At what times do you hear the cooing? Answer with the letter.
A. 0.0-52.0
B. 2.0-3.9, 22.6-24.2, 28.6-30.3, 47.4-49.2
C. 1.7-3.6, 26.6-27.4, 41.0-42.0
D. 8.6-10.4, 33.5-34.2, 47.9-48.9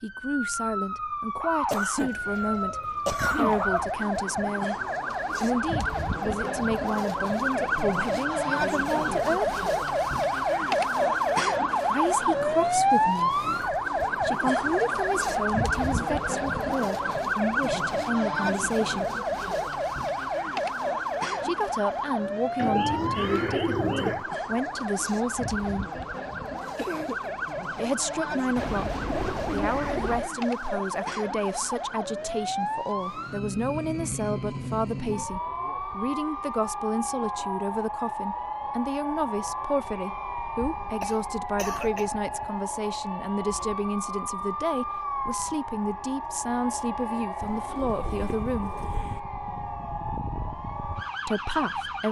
B.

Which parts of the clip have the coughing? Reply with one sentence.
The coughing can be heard from 1.7 to 3.6 s, from 26.6 to 27.4 s and from 41.0 to 42.0 s.